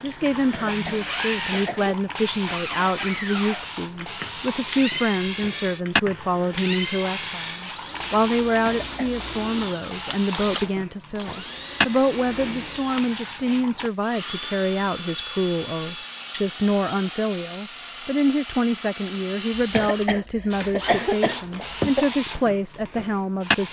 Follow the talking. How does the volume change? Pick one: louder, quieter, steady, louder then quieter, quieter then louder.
steady.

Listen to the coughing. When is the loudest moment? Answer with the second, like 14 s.
21 s.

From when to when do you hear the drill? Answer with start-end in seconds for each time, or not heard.
0.0-20.9.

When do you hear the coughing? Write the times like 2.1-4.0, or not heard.
0.3-1.9, 8.4-9.2, 19.6-22.1.